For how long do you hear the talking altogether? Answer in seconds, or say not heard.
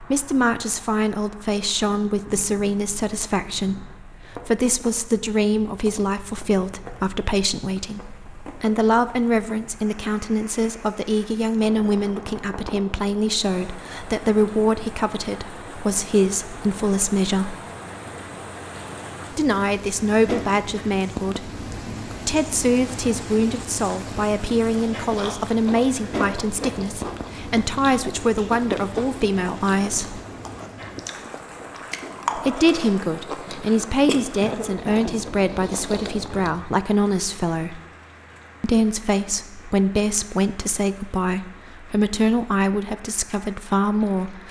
40 s.